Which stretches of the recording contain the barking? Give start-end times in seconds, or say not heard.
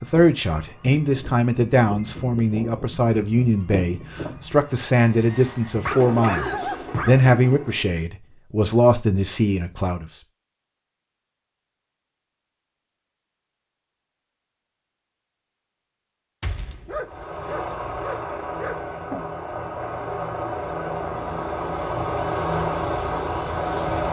5.8-7.3, 16.4-19.2.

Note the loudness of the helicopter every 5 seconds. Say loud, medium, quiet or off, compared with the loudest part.
medium, medium, off, medium, loud.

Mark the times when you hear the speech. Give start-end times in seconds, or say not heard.
0.0-10.2.